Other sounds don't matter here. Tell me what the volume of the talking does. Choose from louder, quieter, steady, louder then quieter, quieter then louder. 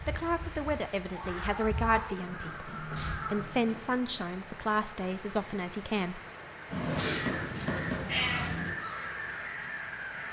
steady.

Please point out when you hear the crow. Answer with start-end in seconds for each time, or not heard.
0.0-3.9, 6.7-10.2.